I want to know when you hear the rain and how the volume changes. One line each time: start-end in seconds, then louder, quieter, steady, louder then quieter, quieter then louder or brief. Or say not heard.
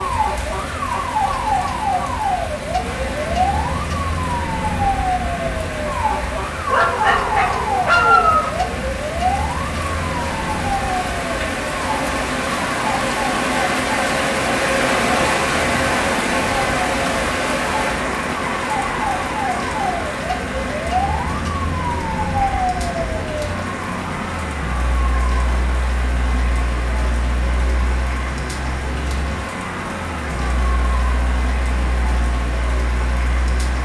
0.0-33.7 louder then quieter.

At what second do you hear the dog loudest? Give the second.
8 s.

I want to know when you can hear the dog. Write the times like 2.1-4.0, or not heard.
6.7-8.5.